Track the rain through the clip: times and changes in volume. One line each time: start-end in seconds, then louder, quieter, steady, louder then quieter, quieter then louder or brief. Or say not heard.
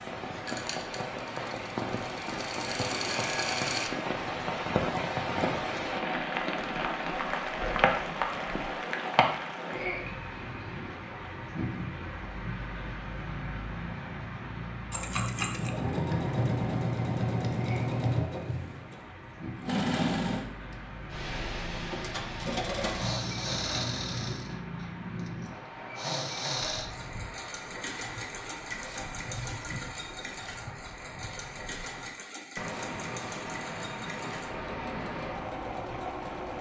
0.0-36.5 quieter.